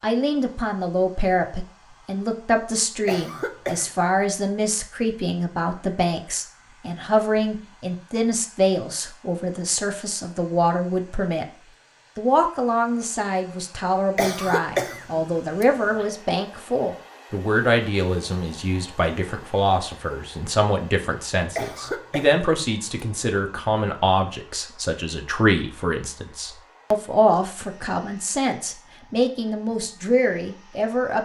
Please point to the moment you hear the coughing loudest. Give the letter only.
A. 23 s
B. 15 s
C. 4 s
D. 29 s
B.